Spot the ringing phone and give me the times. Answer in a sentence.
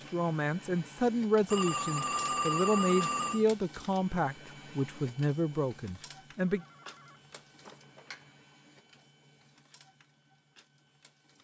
You can hear the ringing phone from 1.5 to 3.5 s and from 6.5 to 8.2 s.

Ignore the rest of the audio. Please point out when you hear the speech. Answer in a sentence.
The speech can be heard from 0.1 to 6.7 s.